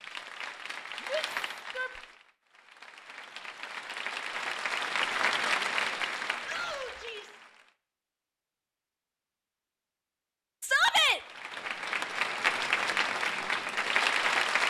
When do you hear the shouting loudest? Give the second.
11 s.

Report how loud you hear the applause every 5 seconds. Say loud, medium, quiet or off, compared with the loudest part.
medium, loud, loud.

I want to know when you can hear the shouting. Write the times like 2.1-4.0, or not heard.
1.1-2.0, 6.4-7.4, 10.6-11.2.